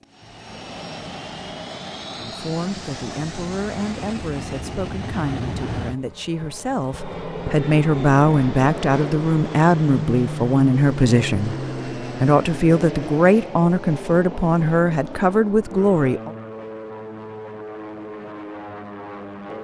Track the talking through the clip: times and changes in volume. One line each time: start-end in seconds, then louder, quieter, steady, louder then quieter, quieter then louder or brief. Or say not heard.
2.2-16.3 louder.